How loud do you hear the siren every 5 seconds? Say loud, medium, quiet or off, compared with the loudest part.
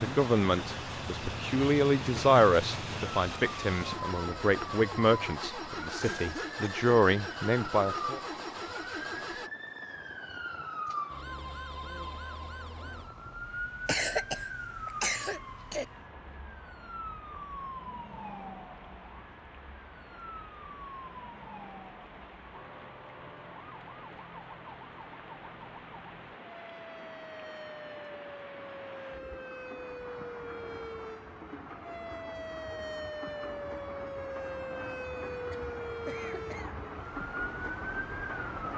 loud, loud, loud, medium, medium, medium, loud, loud.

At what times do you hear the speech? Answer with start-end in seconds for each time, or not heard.
0.0-8.2.